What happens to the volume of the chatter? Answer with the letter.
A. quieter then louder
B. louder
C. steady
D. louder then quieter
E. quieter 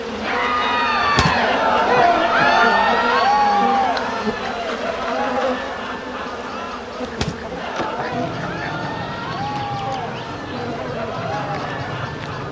E.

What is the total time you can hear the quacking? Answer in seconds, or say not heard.
3 s.